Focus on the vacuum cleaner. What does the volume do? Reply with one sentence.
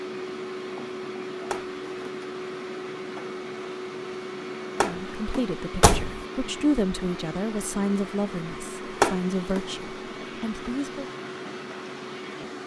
The volume of the vacuum cleaner stays about the same.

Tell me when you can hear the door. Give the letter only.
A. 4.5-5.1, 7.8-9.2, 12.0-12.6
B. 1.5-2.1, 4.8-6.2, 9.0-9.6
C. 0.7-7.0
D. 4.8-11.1
B.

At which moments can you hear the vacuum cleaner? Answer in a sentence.
The vacuum cleaner can be heard from 0.0 to 12.6 s.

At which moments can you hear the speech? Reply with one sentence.
You can hear the speech from 4.8 to 11.1 s.